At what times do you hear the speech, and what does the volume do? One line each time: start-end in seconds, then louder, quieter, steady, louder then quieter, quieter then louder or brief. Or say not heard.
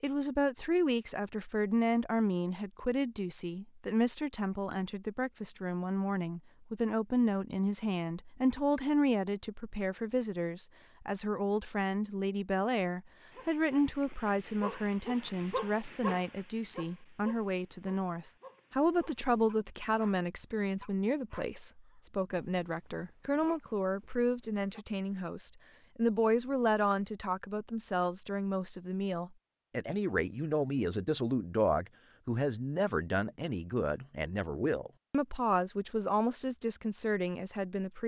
0.0-38.0 steady.